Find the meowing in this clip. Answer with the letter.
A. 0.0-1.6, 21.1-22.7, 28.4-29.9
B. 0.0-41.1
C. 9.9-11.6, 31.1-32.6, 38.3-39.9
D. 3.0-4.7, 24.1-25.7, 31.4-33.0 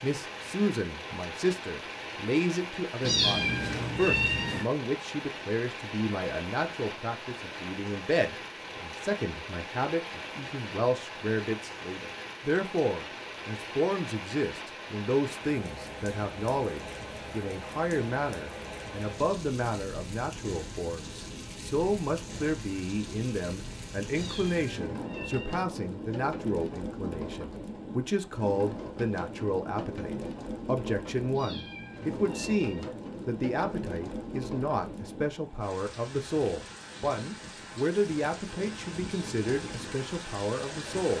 D.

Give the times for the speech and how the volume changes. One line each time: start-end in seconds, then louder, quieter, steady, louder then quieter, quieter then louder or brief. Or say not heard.
0.0-41.1 steady.